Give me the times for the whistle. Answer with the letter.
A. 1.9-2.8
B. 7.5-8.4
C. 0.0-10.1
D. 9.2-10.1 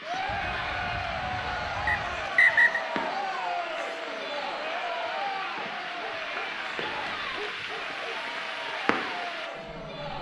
A.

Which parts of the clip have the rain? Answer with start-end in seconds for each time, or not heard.
0.0-10.1.